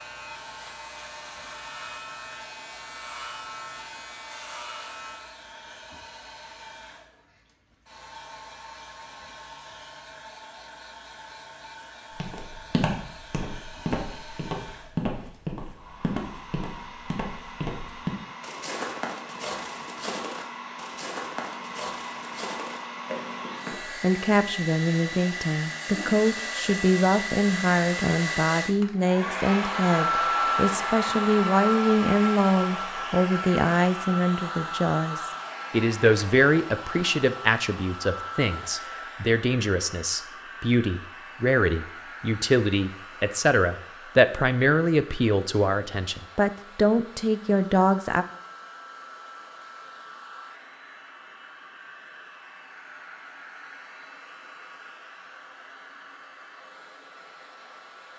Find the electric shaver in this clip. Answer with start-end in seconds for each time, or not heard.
0.0-5.3.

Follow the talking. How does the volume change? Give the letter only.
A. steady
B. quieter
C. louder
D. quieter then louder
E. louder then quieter
A.